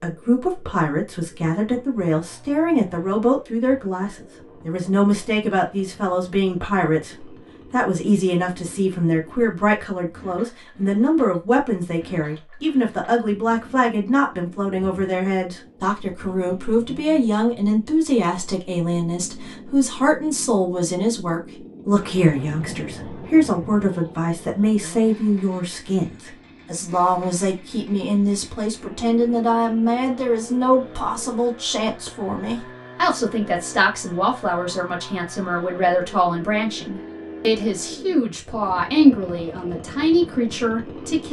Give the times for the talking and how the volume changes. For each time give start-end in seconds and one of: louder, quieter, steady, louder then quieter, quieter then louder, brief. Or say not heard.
0.0-41.2 steady.